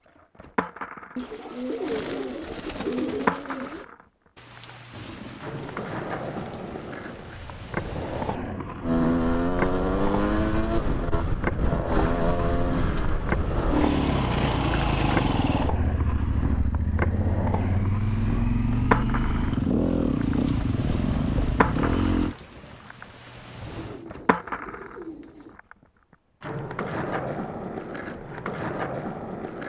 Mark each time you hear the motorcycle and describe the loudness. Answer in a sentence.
The motorcycle can be heard from 8.8 to 22.4 s, at a steady volume.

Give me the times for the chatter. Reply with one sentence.
The chatter can't be heard in this clip.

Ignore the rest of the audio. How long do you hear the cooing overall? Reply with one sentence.
The cooing can be heard for 7 seconds in total.